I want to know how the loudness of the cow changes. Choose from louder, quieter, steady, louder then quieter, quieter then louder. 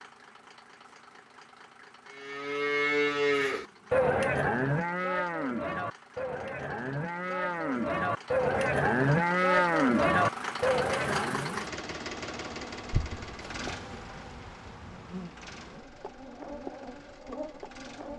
quieter then louder.